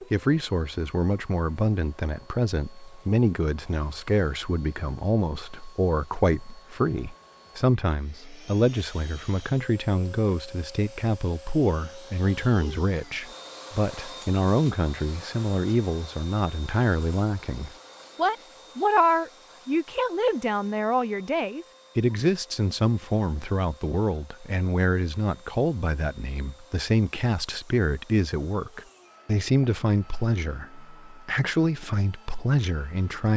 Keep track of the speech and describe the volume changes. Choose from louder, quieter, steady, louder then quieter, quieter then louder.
steady.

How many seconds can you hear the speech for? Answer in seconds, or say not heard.
33 s.